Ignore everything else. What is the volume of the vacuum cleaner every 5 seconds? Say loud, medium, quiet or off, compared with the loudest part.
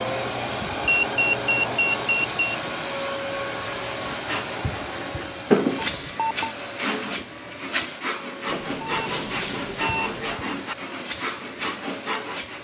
loud, medium, medium.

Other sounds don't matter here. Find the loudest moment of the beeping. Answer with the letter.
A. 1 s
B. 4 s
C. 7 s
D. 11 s
A.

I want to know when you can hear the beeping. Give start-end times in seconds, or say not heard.
0.8-2.5, 5.8-6.5, 8.4-10.4.